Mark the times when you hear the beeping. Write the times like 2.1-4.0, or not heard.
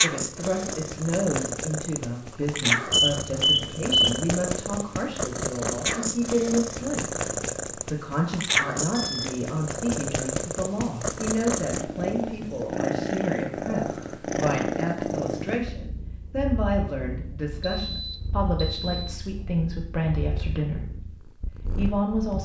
2.9-4.2, 8.9-9.3, 17.6-19.1.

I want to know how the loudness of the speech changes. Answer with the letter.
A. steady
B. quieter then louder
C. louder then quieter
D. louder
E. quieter
A.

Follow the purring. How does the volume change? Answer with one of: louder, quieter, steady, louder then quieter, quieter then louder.
quieter.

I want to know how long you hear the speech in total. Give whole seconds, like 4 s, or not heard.
22 s.